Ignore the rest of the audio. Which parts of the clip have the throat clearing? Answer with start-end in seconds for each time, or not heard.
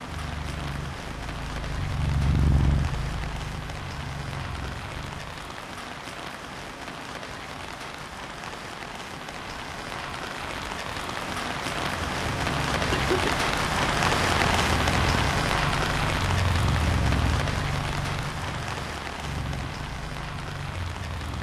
12.9-13.4.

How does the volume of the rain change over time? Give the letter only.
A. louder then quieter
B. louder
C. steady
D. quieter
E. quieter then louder
A.